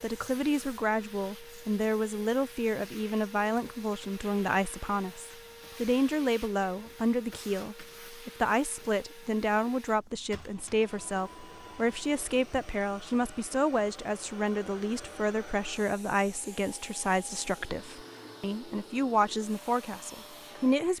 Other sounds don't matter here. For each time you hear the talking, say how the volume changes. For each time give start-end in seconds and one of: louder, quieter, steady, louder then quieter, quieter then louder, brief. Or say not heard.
0.0-20.9 steady.